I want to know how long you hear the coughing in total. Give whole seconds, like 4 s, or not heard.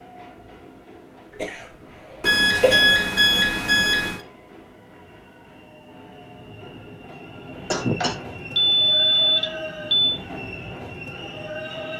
2 s.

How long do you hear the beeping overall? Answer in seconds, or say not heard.
4 s.